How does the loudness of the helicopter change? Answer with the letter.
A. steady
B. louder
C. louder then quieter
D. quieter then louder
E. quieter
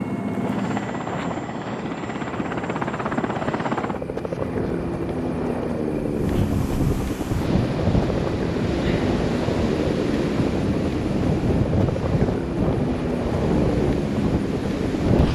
A.